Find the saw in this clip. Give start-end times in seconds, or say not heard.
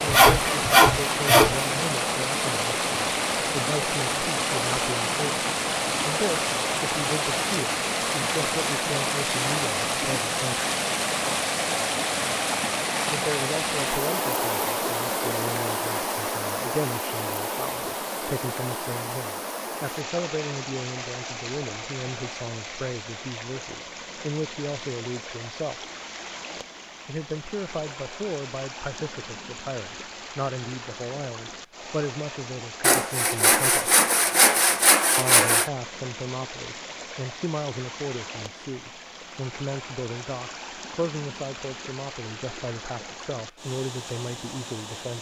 0.1-1.7, 32.8-35.7.